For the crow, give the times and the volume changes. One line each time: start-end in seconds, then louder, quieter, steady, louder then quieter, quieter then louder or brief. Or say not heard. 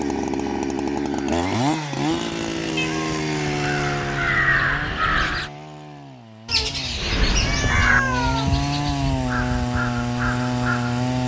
3.3-5.5 brief
7.0-11.2 quieter then louder.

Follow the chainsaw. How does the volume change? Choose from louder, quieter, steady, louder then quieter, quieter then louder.
quieter then louder.